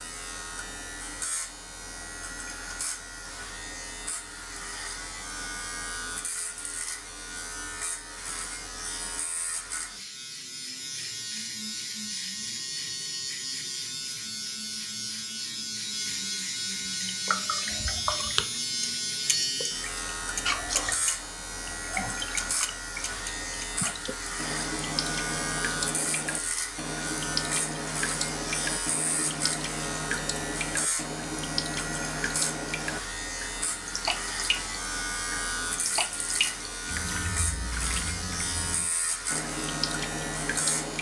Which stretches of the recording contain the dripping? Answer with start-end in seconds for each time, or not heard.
16.9-40.9.